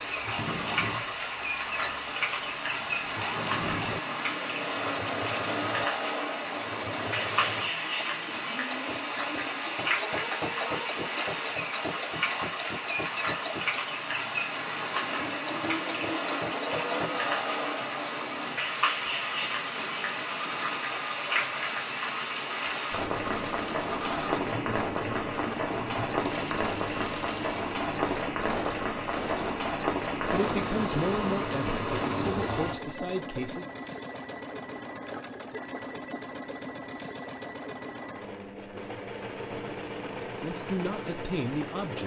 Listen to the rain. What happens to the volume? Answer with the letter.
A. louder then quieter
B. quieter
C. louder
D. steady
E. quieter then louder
D.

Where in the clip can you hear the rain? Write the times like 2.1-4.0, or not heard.
0.0-32.8.